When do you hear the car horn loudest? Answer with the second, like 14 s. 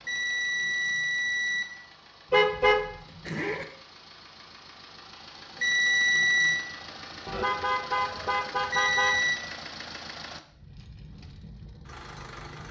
3 s.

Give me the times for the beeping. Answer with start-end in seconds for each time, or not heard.
0.1-1.6, 5.5-6.7, 8.7-9.4.